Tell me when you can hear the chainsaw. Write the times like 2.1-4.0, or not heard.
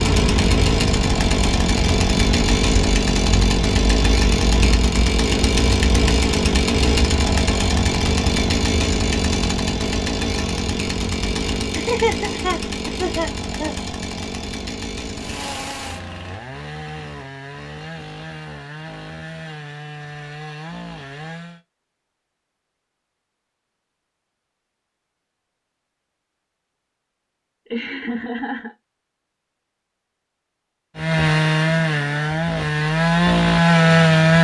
0.0-21.6, 30.9-34.3.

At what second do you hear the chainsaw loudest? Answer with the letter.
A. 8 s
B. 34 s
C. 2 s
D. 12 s
B.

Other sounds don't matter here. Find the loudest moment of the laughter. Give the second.
12 s.